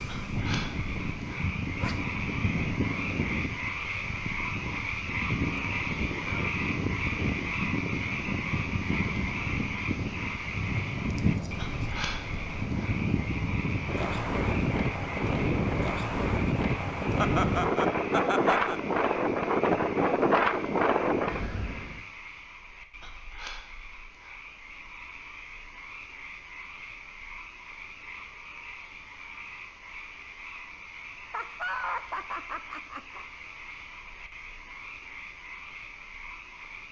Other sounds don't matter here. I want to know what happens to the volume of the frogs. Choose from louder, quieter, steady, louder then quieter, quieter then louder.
quieter.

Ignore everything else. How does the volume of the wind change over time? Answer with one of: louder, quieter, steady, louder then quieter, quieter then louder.
louder.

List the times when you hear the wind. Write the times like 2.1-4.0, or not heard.
0.0-22.0.